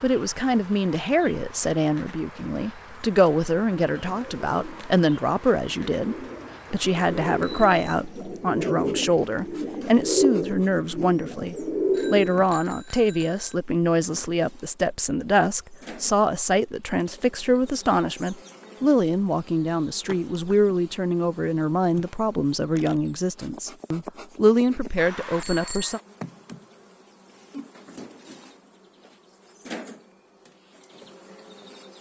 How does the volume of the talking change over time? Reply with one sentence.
The loudness of the talking stays about the same.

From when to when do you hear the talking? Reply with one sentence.
You can hear the talking from 0.0 to 26.0 s.